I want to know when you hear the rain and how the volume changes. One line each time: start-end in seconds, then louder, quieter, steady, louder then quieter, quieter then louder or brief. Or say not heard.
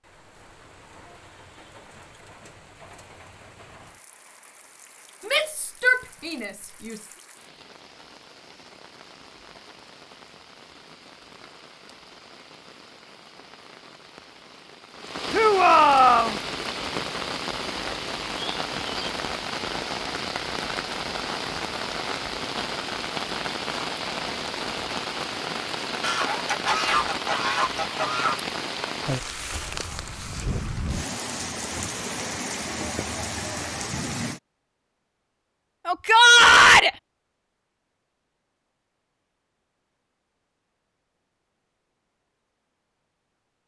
0.0-34.4 louder.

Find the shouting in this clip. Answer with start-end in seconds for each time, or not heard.
5.2-7.0, 15.3-16.4, 35.9-36.9.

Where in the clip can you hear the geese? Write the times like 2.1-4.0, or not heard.
26.0-28.4.